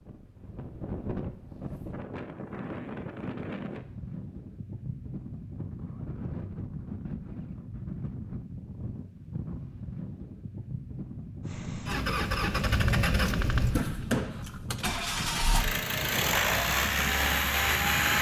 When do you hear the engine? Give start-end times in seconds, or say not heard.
11.5-18.1.